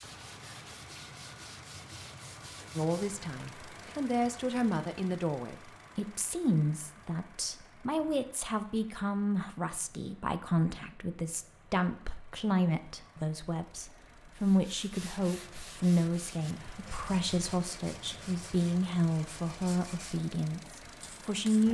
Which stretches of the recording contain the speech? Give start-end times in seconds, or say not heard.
2.8-21.6.